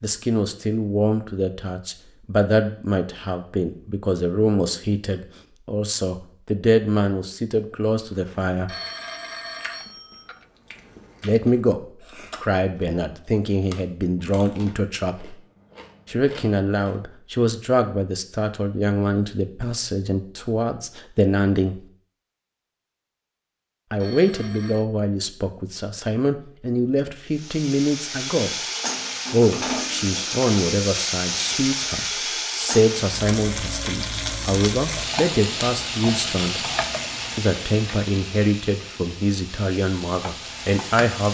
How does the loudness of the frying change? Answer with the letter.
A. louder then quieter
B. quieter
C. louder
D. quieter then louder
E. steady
B.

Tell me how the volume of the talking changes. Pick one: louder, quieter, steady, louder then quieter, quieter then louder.
steady.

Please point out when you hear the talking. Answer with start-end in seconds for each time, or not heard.
0.0-8.7, 11.2-15.3, 16.1-21.8, 23.9-28.6, 29.3-36.6, 37.4-41.2.